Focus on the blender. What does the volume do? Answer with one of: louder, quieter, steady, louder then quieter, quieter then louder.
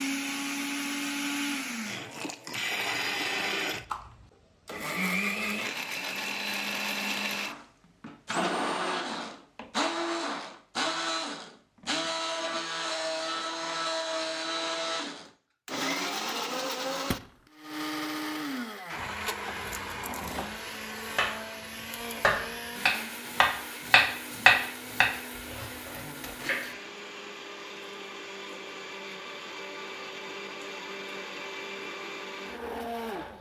quieter.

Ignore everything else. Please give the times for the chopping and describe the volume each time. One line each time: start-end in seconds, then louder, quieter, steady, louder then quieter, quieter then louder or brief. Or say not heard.
19.4-21.4 brief
22.2-26.8 louder then quieter.